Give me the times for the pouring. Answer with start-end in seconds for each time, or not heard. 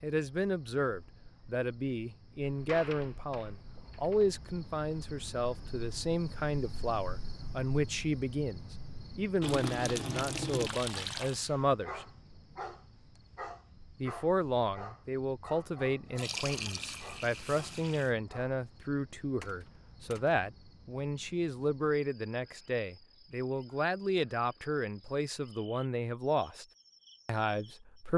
9.4-11.4, 16.1-18.1.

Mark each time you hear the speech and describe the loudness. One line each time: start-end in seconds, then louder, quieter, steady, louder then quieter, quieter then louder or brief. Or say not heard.
0.0-12.1 steady
14.0-26.6 steady
27.2-28.1 brief.